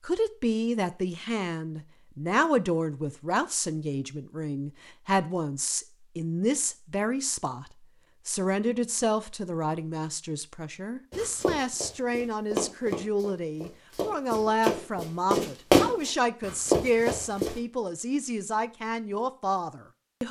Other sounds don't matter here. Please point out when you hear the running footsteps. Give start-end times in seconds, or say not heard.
11.1-17.5.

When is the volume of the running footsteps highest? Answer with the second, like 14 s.
16 s.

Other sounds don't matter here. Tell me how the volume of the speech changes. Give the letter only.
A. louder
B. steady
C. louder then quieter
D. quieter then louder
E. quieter
B.